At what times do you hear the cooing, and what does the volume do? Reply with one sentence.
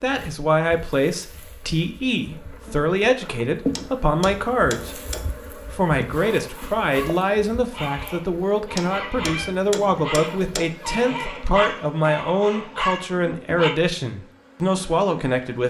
You can't hear the cooing here.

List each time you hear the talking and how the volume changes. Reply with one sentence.
You can hear the talking from 0.0 to 15.6 s, at a steady volume.